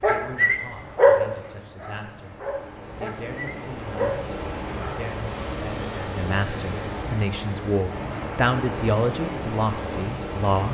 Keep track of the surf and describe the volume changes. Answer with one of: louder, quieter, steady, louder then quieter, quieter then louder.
louder.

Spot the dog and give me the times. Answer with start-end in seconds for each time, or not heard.
0.0-5.0.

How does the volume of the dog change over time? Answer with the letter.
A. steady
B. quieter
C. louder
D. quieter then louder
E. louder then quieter
D.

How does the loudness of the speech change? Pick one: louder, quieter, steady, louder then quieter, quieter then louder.
louder.